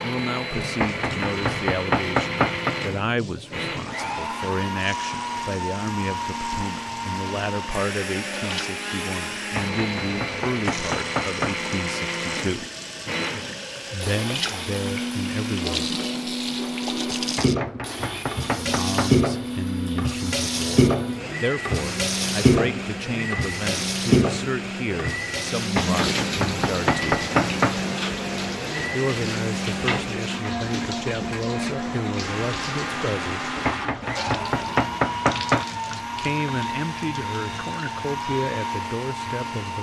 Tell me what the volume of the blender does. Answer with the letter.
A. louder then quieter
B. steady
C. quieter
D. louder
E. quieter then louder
B.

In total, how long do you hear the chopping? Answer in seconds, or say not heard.
10 s.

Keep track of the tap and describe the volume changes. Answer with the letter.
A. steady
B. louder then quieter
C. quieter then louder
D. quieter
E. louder
B.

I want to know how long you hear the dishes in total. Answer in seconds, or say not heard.
not heard.